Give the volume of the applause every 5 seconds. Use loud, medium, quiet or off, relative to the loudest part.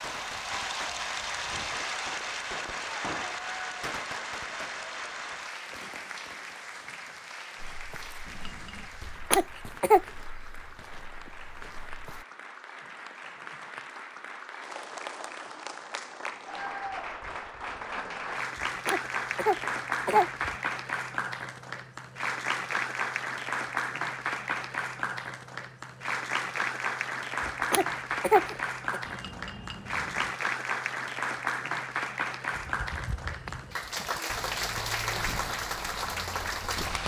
loud, medium, medium, loud, loud, loud, loud, loud.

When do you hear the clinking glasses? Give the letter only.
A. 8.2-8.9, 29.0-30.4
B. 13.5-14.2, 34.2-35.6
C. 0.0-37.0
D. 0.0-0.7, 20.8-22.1
A.